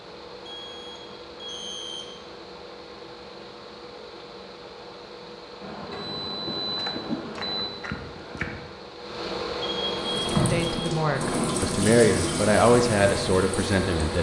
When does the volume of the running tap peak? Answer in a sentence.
The loudest moment of the running tap is at 11 seconds.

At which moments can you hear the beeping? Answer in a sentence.
The beeping can be heard from 0.5 to 2.1 s, from 5.6 to 7.7 s and from 9.6 to 10.8 s.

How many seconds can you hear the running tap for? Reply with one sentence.
The running tap can be heard for 4 seconds in total.